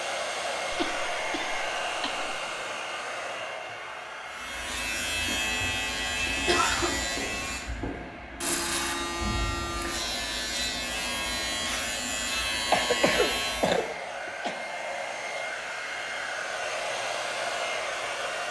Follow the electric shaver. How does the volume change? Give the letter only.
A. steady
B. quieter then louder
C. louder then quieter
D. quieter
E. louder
A.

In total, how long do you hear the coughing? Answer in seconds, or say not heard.
4 s.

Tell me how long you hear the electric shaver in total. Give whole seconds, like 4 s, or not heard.
10 s.